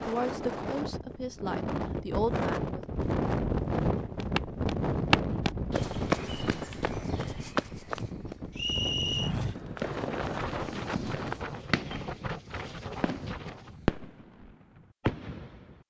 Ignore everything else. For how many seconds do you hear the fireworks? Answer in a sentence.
You can hear the fireworks for 5 seconds altogether.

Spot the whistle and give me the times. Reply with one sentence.
You can hear the whistle from 8.6 to 9.3 s.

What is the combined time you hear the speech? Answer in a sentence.
You can hear the speech for 3 seconds altogether.